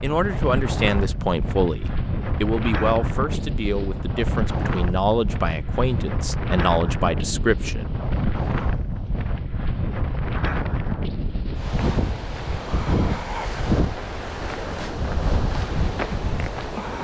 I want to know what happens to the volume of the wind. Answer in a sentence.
The volume of the wind stays about the same.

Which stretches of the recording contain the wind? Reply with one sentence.
You can hear the wind from 0.0 to 16.9 s.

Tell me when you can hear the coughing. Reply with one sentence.
The coughing can't be heard in this clip.